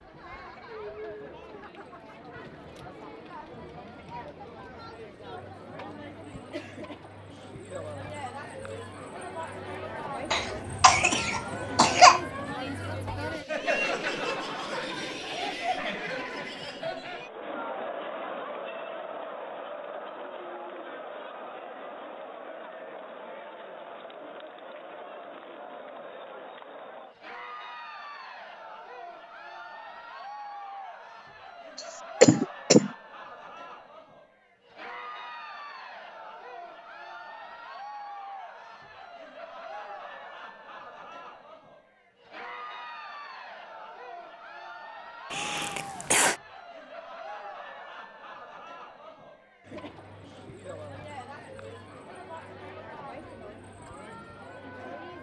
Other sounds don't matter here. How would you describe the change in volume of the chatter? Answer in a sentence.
The volume of the chatter goes up, then down.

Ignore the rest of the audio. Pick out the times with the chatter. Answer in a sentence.
You can hear the chatter from 0.0 to 55.1 s.